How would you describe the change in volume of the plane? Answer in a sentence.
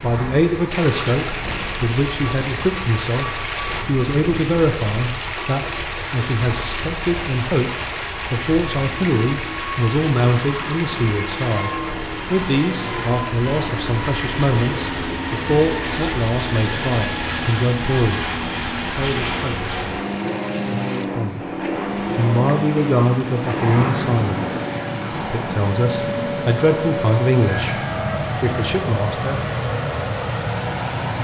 The loudness of the plane goes up.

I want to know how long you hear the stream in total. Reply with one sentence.
The stream can be heard for 31 seconds in total.